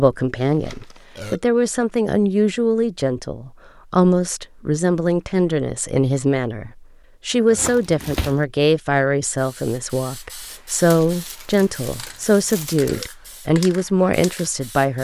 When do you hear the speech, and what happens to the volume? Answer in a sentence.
You can hear the speech from 0.0 to 15.0 s, at a steady volume.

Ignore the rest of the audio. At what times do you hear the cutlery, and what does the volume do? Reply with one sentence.
You can't hear the cutlery here.